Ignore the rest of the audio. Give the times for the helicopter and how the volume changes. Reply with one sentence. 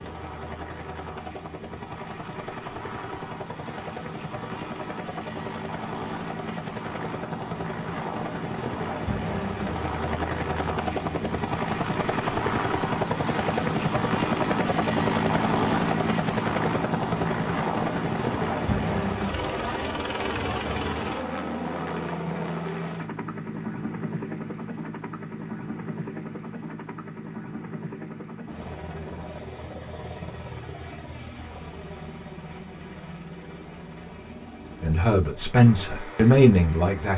You can hear the helicopter from 0.0 to 37.1 s, getting louder then quieter.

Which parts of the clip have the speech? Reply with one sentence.
The speech can be heard from 34.8 to 37.1 s.